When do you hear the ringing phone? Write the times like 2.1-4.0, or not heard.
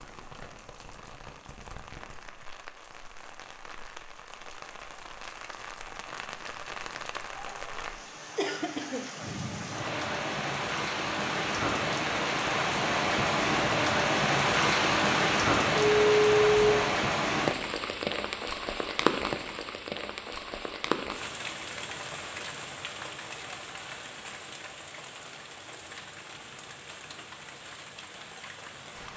15.8-16.9.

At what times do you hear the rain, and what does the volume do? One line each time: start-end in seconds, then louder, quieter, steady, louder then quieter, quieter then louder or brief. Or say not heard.
0.0-29.1 louder then quieter.